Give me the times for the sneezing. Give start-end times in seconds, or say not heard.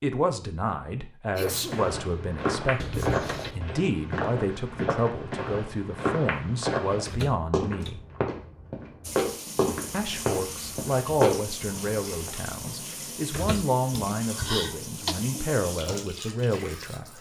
1.4-1.9, 13.9-15.2.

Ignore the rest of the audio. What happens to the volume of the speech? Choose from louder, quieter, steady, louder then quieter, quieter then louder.
steady.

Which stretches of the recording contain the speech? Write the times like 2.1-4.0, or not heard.
0.0-8.0, 9.9-17.1.